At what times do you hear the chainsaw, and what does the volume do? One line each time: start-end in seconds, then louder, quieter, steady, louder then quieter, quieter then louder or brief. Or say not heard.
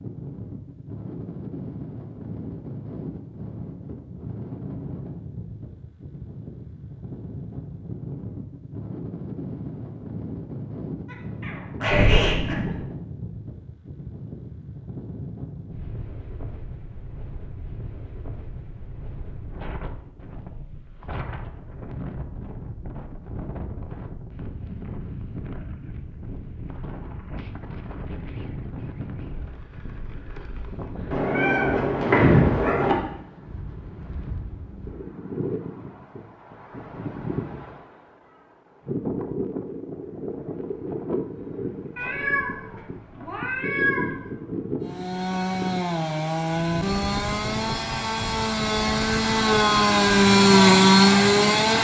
44.8-51.7 louder.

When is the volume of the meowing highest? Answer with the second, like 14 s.
32 s.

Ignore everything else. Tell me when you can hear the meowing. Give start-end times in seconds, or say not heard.
11.4-12.8, 31.1-33.0, 42.0-44.2.